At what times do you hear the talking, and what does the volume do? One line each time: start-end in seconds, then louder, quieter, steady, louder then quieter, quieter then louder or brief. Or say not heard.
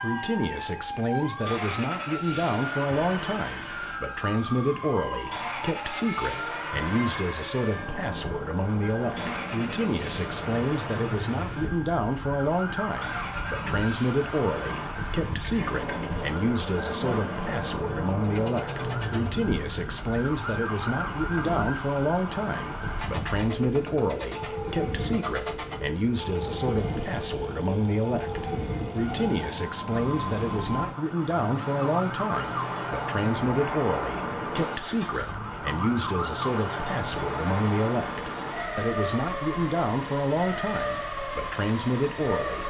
0.0-42.6 steady.